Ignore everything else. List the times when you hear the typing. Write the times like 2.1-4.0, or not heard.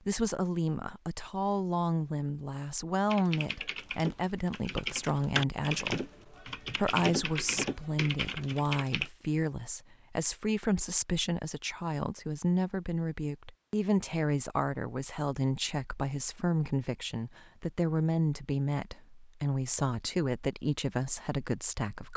3.0-9.1.